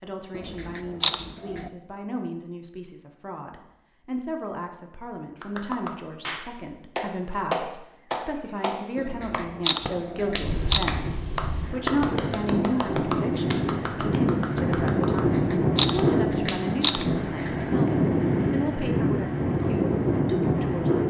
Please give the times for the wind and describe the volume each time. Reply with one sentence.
The wind can be heard from 10.4 to 21.0 s, getting louder.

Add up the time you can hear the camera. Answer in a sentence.
The camera can be heard for 6 seconds in total.